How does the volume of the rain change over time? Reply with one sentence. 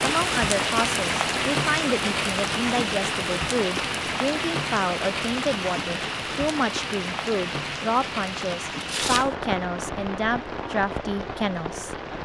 The volume of the rain goes down.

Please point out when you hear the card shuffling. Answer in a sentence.
The card shuffling can be heard from 8.8 to 9.3 s.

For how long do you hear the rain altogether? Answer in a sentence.
The rain can be heard for 12 seconds in total.